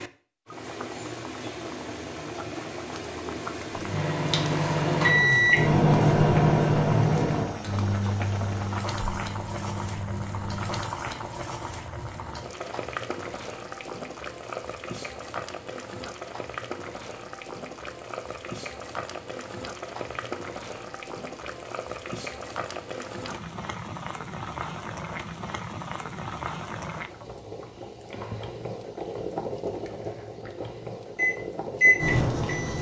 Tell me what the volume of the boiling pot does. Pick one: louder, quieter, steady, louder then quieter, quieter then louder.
steady.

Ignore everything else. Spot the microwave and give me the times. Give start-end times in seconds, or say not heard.
3.7-10.9, 31.1-32.7.